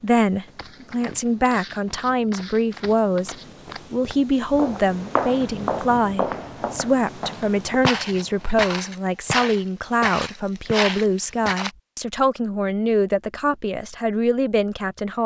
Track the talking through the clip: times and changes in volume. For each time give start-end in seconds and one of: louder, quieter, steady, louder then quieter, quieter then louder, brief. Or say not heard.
0.0-15.2 steady.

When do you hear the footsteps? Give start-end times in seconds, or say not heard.
0.4-11.7.